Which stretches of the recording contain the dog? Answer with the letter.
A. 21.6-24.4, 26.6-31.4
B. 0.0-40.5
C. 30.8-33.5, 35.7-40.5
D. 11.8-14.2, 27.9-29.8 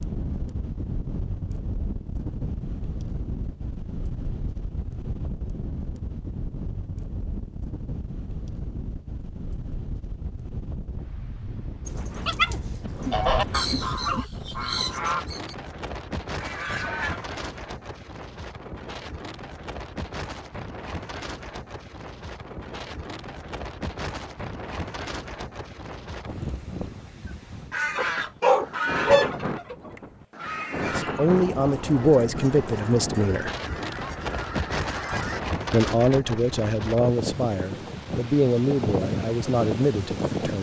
D.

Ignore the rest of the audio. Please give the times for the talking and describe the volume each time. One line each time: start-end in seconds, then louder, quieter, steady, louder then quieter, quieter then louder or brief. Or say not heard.
30.8-33.5 brief
35.7-40.5 steady.